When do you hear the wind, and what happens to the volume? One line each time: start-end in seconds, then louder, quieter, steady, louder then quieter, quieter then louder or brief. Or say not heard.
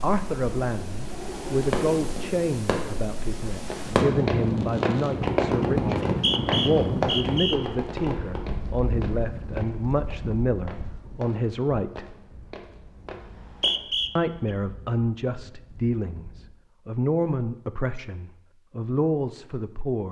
0.0-16.6 louder then quieter.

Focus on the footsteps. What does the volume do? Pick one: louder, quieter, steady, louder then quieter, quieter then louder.
quieter.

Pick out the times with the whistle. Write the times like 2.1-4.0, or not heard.
6.0-7.6, 13.2-14.5.